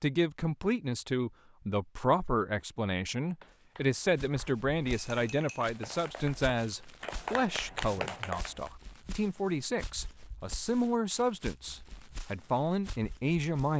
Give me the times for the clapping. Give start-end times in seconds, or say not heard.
3.2-8.7.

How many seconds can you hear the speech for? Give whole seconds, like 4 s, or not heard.
14 s.